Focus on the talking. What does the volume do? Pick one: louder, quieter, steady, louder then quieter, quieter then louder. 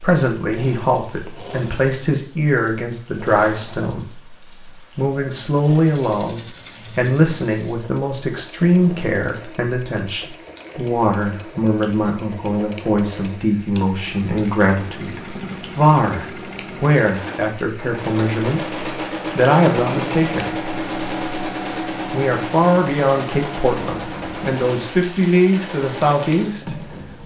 steady.